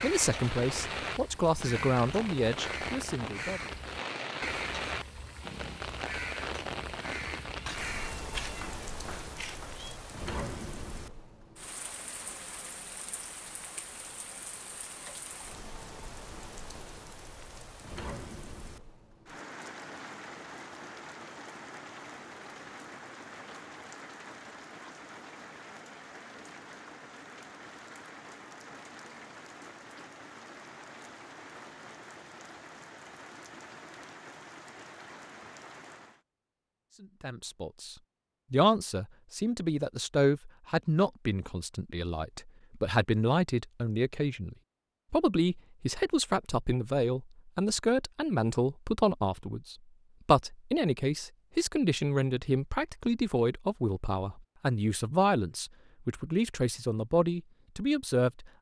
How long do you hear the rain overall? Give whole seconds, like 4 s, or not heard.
36 s.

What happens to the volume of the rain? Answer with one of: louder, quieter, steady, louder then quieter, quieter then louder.
quieter.